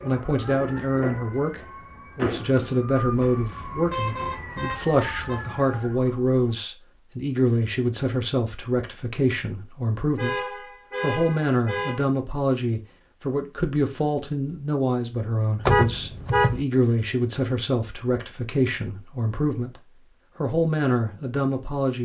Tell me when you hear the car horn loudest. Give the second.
16 s.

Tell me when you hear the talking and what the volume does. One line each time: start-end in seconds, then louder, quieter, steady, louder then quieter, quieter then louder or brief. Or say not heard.
0.0-22.0 steady.